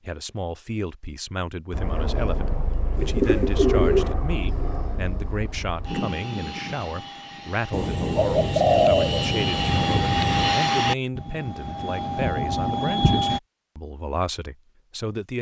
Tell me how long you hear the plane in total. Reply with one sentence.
The plane can be heard for 12 seconds in total.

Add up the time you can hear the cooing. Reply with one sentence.
You can hear the cooing for 4 seconds altogether.